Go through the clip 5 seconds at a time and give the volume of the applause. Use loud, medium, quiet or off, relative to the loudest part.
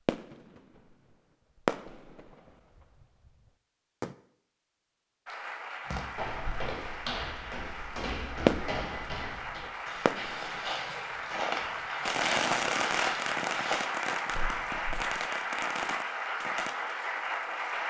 off, medium, loud, loud.